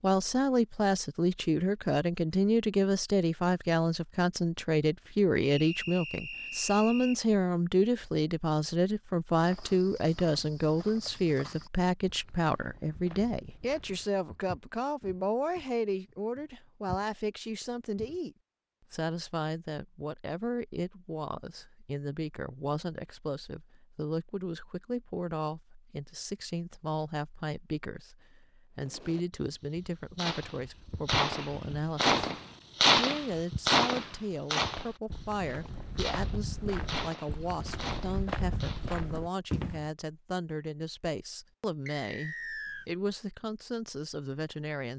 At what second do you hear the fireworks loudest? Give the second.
33 s.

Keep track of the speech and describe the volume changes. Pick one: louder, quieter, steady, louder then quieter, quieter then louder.
quieter.